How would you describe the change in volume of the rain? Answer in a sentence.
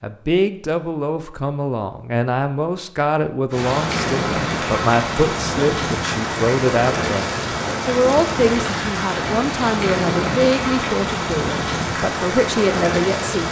The volume of the rain stays about the same.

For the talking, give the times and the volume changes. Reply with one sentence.
The talking can be heard from 0.0 to 13.4 s, at a steady volume.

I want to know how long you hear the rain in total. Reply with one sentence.
You can hear the rain for 10 seconds altogether.